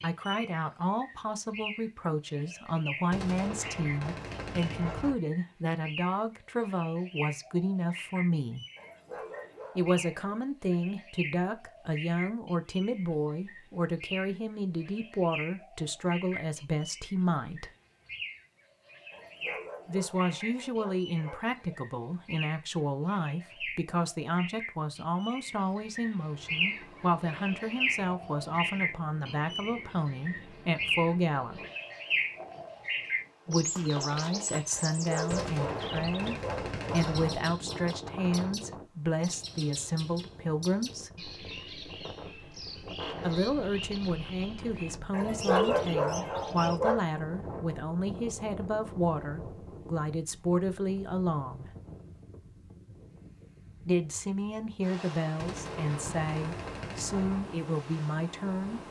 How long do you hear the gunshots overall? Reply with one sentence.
The gunshots can be heard for 6 seconds in total.